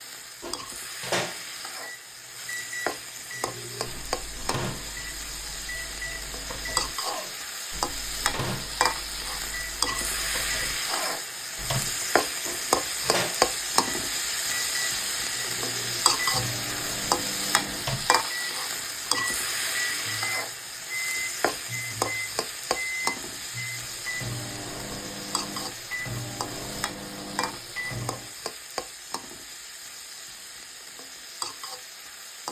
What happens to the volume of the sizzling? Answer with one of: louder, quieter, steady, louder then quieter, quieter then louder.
louder then quieter.